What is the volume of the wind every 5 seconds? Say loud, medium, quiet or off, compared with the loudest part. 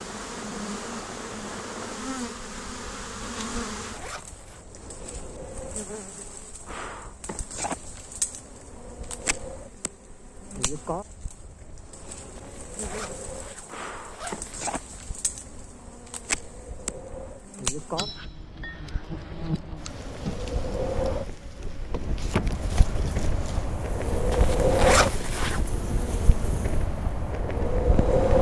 quiet, quiet, quiet, quiet, loud, loud.